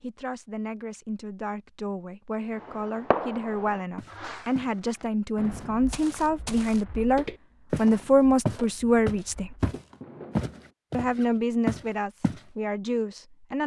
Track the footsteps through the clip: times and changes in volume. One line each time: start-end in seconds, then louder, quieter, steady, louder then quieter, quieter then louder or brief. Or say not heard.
4.0-4.8 brief
5.4-12.4 louder.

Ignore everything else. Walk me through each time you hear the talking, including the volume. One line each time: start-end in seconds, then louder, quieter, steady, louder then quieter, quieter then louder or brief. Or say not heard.
0.0-9.5 louder
10.9-13.6 brief.